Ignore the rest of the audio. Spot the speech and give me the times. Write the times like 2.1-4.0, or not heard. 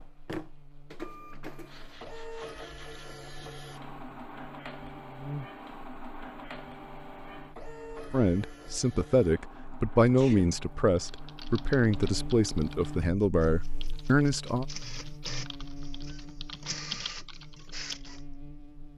8.1-14.7.